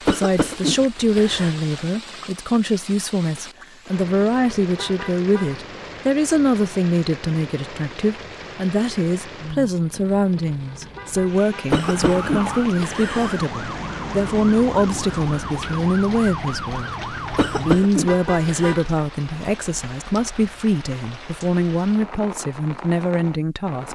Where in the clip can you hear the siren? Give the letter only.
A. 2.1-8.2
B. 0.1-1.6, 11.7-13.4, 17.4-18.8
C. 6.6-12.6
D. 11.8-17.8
D.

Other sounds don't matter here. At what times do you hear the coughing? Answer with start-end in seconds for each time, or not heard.
0.1-1.6, 11.7-13.4, 17.4-18.8.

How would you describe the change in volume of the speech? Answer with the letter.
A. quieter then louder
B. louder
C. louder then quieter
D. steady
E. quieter
D.